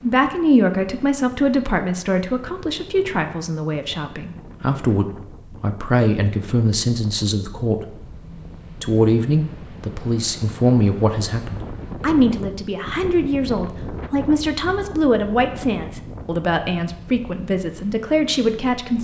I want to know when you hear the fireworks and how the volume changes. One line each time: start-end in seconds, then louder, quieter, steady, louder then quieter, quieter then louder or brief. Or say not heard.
not heard.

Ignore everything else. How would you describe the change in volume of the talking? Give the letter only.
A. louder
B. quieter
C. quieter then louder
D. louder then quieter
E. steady
E.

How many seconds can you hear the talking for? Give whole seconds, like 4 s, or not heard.
18 s.